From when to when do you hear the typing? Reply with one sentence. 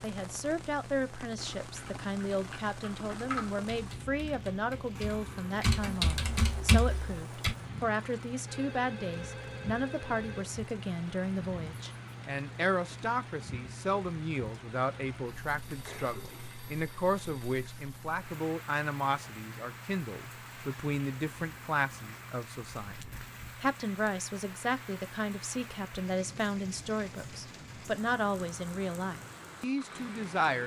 The typing can be heard from 1.6 to 7.5 s.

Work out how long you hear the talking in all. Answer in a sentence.
The talking can be heard for 30 seconds in total.